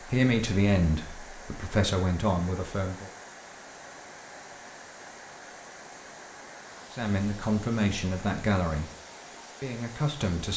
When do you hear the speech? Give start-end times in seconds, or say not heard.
0.0-3.1, 6.9-8.9, 9.6-10.5.